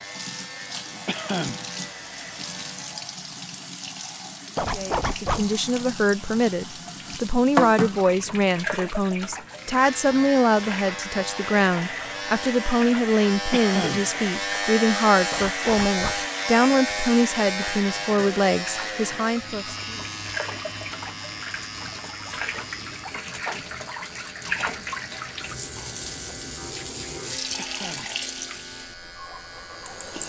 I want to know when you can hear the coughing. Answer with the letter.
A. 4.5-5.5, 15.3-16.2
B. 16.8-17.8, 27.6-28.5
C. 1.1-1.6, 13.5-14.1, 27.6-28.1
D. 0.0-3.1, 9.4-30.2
C.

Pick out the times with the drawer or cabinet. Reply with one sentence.
The drawer or cabinet can't be heard in this clip.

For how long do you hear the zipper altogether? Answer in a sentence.
The zipper can be heard for 2 seconds in total.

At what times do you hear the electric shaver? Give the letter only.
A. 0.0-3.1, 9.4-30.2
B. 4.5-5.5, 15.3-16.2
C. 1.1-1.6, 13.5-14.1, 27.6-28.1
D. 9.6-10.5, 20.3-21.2
A.